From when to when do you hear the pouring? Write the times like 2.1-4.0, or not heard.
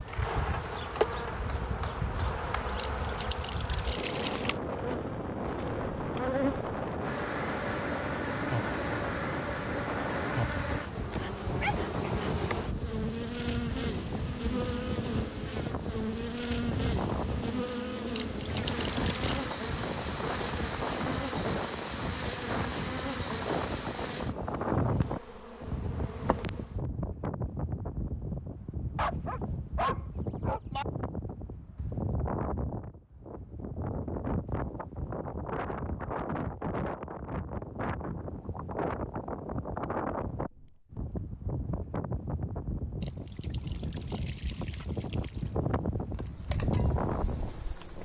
2.8-4.6, 18.1-19.4, 43.0-45.5.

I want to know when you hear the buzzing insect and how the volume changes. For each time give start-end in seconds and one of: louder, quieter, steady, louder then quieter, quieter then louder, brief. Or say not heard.
0.0-26.9 steady
46.1-48.0 brief.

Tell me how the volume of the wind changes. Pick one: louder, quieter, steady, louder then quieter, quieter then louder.
steady.